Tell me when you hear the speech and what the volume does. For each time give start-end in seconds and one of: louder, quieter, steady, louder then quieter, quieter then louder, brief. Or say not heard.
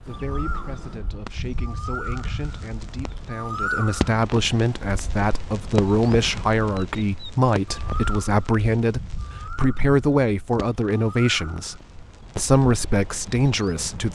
0.0-11.8 louder
12.3-14.1 brief.